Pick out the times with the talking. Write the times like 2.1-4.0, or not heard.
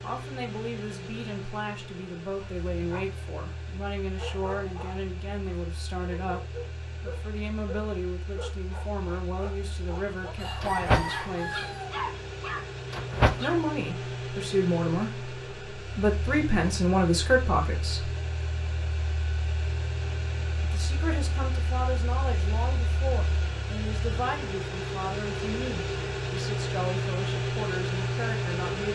0.0-11.7, 13.4-18.1, 20.6-28.8.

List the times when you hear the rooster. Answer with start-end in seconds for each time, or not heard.
10.3-11.9.